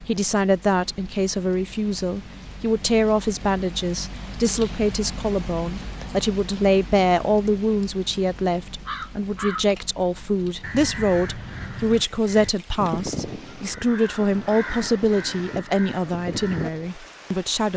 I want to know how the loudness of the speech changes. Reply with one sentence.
The loudness of the speech stays about the same.